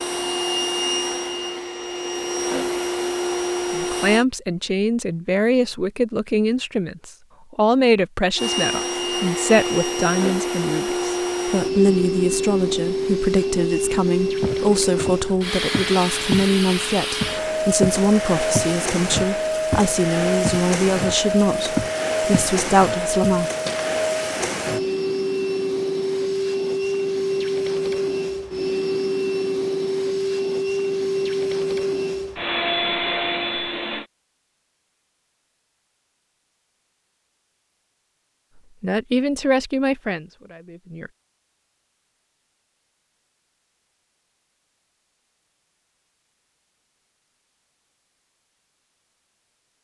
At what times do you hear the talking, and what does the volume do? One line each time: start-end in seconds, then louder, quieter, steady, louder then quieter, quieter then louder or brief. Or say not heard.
3.7-23.5 steady
38.8-41.1 brief.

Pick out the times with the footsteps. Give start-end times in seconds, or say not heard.
14.4-16.5, 17.2-22.6, 23.2-23.9.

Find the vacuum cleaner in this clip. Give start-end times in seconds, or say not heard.
0.0-4.2, 8.3-34.0.